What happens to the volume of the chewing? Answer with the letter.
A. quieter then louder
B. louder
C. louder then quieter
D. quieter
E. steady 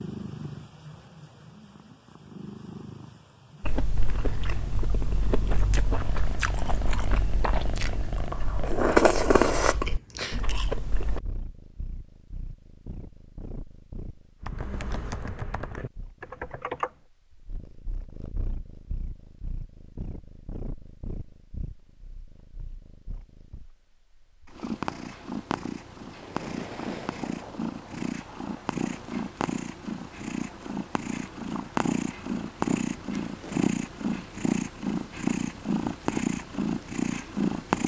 C.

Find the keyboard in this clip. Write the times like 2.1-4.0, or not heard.
14.4-17.0.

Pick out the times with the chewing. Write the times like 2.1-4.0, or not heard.
3.6-11.2.